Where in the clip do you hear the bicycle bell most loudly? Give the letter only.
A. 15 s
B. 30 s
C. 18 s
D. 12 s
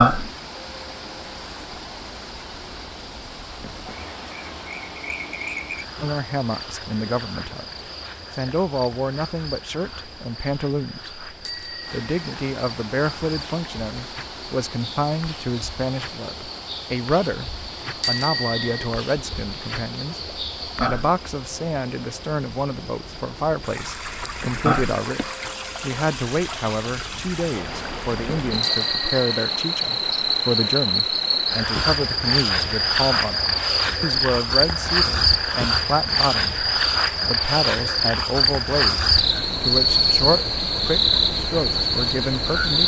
C.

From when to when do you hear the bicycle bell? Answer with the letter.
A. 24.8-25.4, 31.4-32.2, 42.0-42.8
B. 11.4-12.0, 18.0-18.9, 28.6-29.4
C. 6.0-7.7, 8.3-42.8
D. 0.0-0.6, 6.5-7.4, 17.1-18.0
B.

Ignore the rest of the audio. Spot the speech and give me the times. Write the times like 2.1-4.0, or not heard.
6.0-7.7, 8.3-42.8.